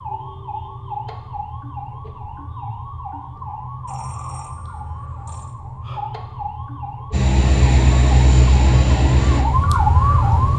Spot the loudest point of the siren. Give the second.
10 s.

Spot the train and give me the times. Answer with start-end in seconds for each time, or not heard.
7.1-10.5.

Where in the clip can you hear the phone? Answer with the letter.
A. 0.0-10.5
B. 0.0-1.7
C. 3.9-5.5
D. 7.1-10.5
C.